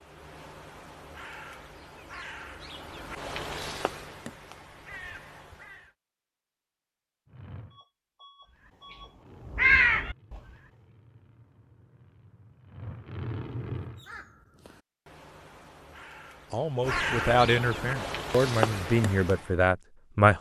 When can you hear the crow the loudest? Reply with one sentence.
The loudest moment of the crow is at 10 seconds.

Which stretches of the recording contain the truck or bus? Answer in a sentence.
You can hear the truck or bus from 7.2 to 14.1 s.